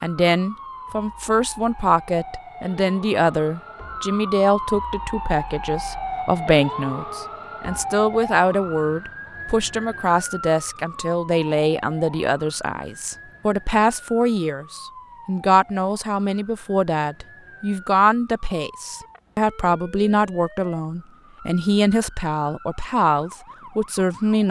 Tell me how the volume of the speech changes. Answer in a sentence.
The volume of the speech stays about the same.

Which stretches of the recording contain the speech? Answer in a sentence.
The speech can be heard from 0.0 to 24.4 s.